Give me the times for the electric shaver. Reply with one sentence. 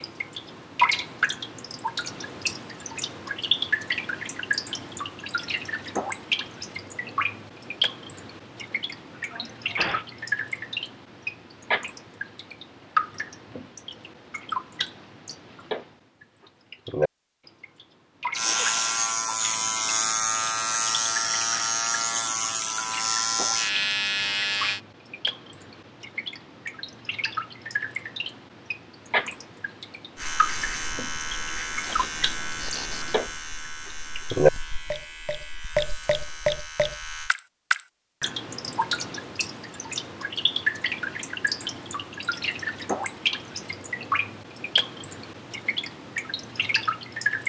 You can hear the electric shaver from 18.3 to 24.8 s and from 30.1 to 37.4 s.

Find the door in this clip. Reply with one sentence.
You can't hear the door here.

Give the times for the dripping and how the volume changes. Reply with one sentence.
You can hear the dripping from 0.0 to 47.4 s, getting quieter then louder.